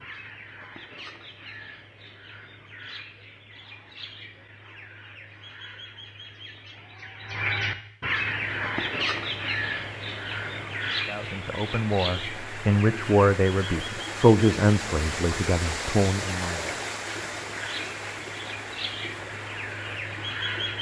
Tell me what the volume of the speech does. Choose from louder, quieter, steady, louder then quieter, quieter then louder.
louder then quieter.